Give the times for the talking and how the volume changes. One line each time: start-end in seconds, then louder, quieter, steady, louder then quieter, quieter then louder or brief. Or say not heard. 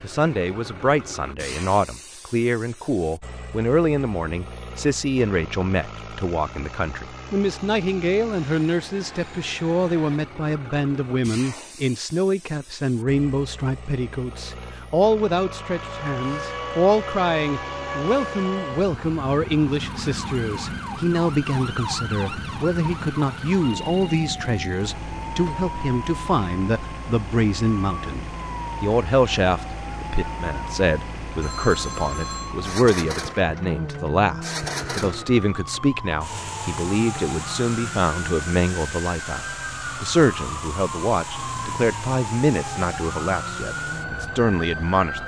0.0-45.2 steady.